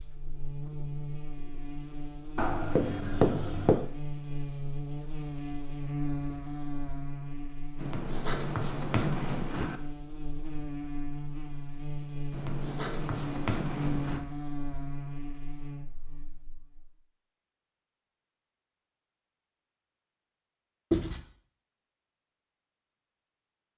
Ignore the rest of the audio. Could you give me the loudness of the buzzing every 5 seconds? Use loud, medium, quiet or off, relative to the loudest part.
loud, loud, loud, medium, off.